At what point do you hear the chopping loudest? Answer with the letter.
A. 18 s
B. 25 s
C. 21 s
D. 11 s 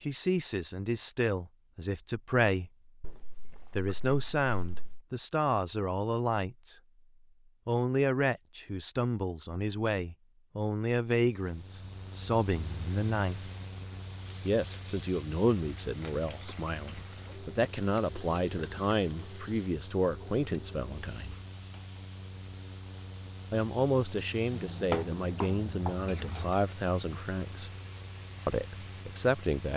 B.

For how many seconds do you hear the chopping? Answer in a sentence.
You can hear the chopping for 2 seconds altogether.